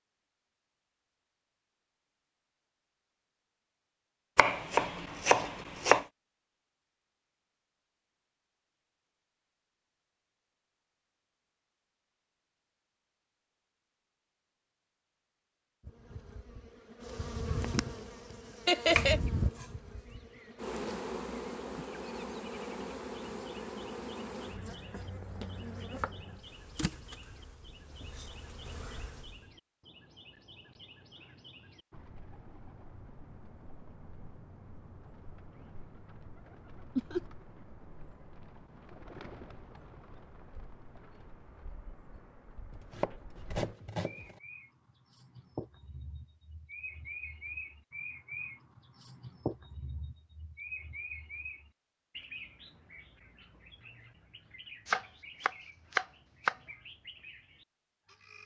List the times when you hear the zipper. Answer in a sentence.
The zipper can't be heard in this clip.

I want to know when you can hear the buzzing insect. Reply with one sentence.
You can hear the buzzing insect from 15.8 to 29.5 s.